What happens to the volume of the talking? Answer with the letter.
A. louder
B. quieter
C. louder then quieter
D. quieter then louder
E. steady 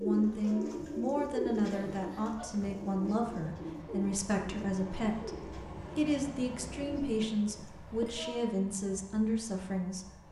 E.